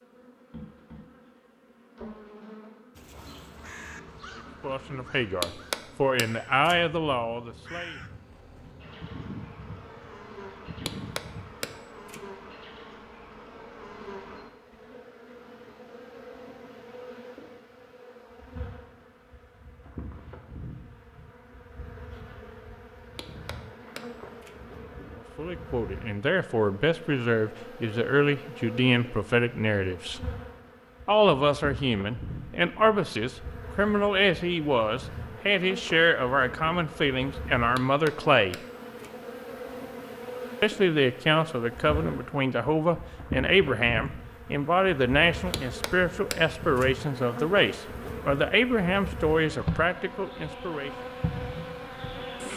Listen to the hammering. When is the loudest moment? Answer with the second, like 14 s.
6 s.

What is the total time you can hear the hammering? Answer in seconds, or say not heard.
7 s.